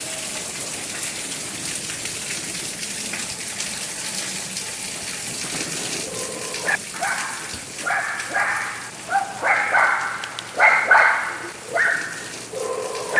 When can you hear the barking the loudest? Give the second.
11 s.